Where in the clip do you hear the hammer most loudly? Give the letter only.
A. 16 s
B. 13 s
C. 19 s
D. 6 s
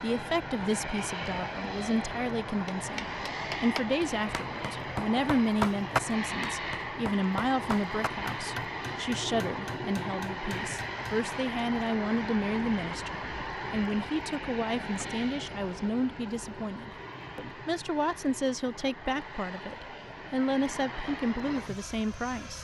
D.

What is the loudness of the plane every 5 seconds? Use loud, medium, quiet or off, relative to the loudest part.
loud, loud, loud, medium, medium.